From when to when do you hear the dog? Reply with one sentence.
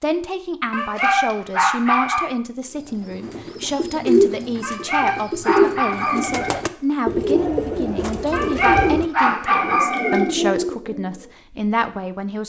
The dog can be heard from 0.7 to 2.3 s, from 4.6 to 6.7 s and from 8.3 to 10.3 s.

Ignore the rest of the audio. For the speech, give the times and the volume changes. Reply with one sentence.
You can hear the speech from 0.0 to 12.4 s, at a steady volume.